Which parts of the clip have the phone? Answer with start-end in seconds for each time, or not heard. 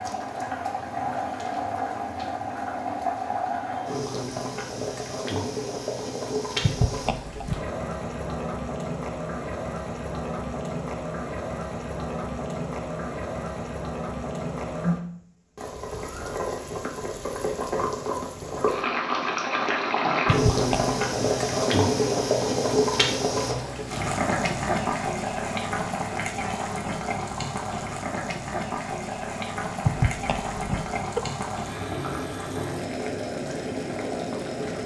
6.6-7.7, 20.2-20.9, 29.9-31.2.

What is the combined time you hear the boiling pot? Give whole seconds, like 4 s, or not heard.
35 s.